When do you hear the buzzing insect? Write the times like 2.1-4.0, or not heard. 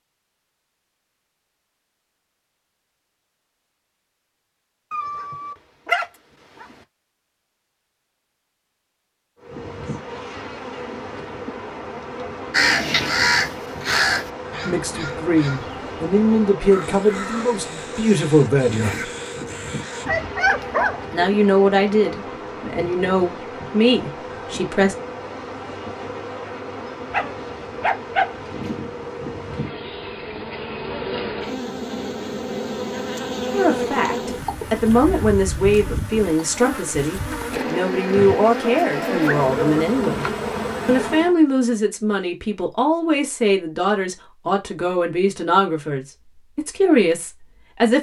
9.4-41.4.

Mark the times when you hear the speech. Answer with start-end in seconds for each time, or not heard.
14.6-19.1, 21.1-24.9, 33.5-40.2, 40.9-47.9.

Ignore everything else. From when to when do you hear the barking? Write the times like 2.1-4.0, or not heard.
4.9-6.7, 20.1-21.2, 27.1-28.7, 38.6-39.8.